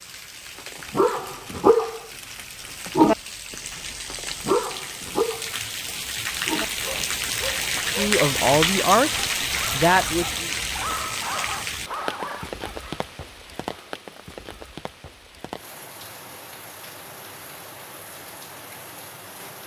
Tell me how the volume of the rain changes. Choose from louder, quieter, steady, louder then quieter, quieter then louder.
louder then quieter.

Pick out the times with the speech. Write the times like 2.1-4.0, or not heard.
8.0-10.5.